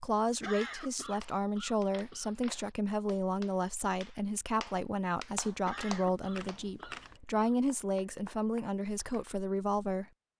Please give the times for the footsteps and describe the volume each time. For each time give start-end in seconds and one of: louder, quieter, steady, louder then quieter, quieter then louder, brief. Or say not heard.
not heard.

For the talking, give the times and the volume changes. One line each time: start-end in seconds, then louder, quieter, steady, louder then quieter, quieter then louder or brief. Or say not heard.
0.0-10.1 steady.